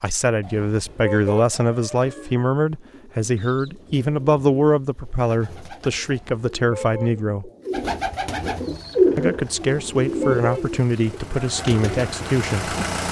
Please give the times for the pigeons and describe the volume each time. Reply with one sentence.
You can hear the pigeons from 0.8 to 12.2 s, getting louder then quieter.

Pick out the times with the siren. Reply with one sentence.
You can't hear the siren here.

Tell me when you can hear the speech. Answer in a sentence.
You can hear the speech from 0.0 to 7.5 s and from 9.2 to 12.8 s.